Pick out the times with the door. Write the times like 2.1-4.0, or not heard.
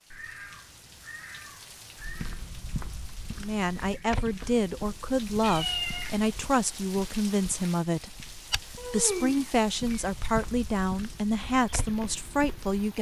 not heard.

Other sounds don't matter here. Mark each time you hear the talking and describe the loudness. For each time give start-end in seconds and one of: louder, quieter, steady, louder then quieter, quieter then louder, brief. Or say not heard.
3.4-12.9 steady.